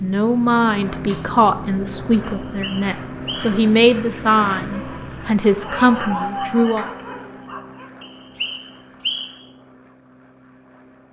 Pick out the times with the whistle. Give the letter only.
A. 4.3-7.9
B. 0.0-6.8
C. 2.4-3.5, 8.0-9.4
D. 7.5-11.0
C.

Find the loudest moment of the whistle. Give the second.
9 s.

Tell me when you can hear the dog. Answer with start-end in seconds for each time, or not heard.
4.3-7.9.